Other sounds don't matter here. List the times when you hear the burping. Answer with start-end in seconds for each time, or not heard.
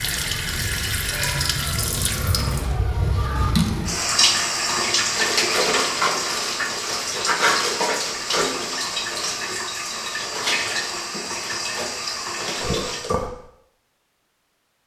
12.6-13.3.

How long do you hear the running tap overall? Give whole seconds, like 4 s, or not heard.
13 s.